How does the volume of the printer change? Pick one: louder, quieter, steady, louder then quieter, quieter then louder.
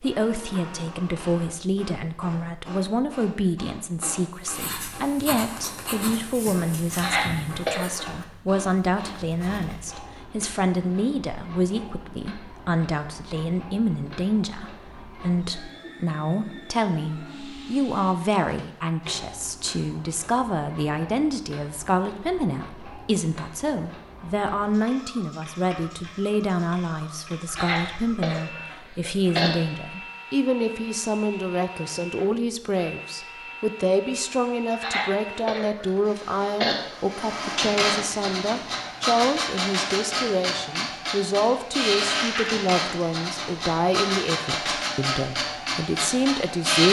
louder.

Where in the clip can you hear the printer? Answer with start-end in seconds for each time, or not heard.
0.0-46.8.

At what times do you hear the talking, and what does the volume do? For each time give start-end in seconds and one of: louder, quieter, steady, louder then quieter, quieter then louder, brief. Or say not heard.
0.0-46.8 steady.